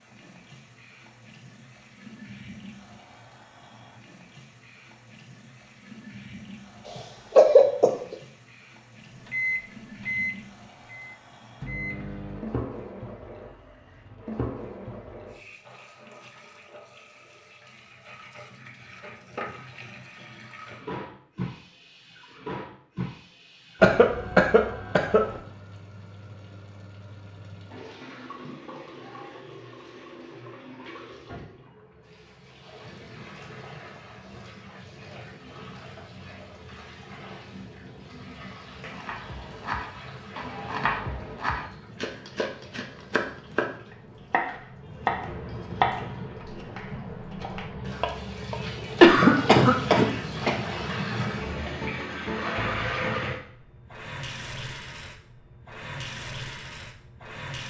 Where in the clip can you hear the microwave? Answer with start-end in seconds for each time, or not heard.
9.2-12.4.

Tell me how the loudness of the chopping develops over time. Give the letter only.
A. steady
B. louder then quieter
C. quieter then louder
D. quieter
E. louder
B.